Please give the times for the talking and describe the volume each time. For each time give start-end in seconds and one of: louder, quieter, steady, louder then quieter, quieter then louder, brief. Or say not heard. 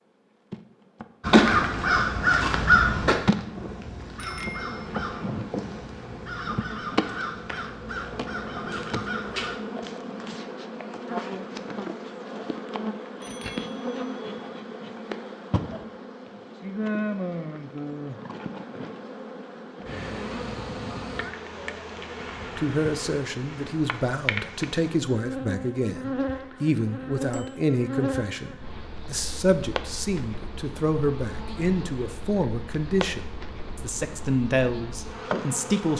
22.6-35.9 steady.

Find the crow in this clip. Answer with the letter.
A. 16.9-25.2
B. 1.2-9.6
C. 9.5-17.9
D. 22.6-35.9
B.